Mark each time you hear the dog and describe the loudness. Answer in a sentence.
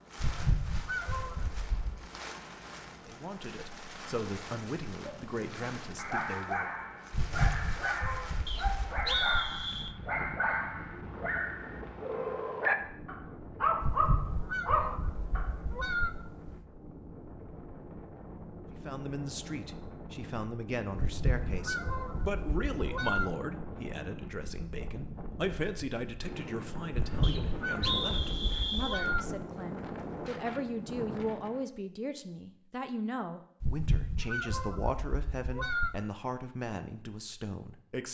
The dog can be heard from 5.0 to 15.6 s, getting louder.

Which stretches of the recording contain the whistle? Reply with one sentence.
The whistle can be heard from 8.4 to 9.9 s and from 27.2 to 29.1 s.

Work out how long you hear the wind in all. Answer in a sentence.
The wind can be heard for 32 seconds in total.